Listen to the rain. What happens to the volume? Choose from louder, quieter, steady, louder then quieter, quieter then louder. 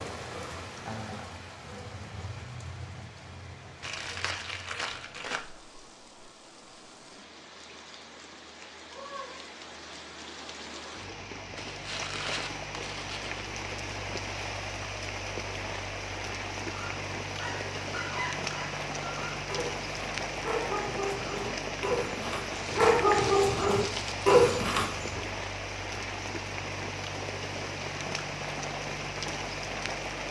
louder.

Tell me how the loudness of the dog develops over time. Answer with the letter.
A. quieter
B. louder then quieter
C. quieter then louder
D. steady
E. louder
E.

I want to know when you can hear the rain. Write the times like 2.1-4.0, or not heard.
0.0-30.2.